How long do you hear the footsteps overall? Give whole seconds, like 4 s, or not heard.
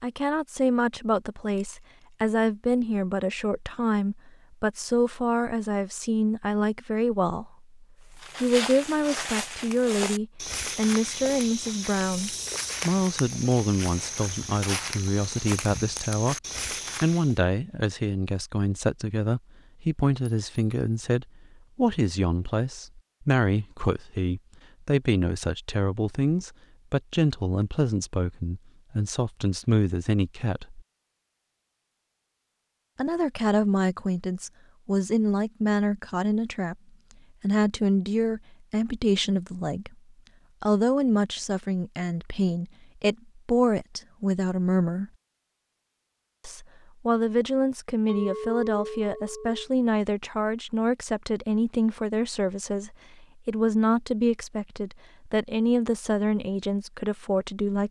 9 s.